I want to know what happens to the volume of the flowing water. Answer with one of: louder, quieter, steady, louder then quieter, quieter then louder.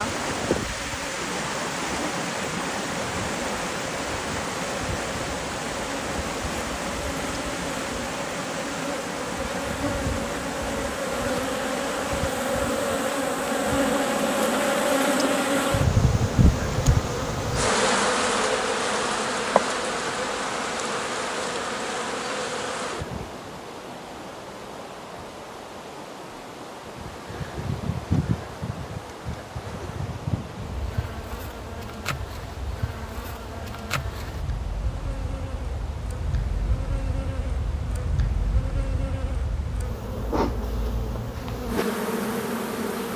quieter.